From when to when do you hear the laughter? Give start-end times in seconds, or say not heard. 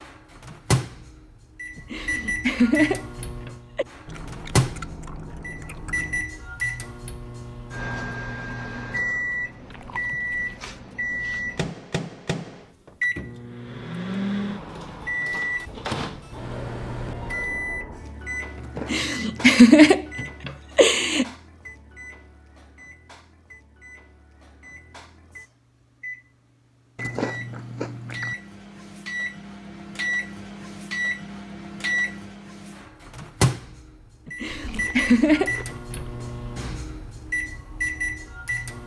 1.8-3.9, 18.8-21.2, 34.2-36.0.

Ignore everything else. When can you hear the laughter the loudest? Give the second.
20 s.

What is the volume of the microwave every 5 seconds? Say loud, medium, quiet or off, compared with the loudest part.
loud, loud, loud, loud, quiet, medium, loud, loud.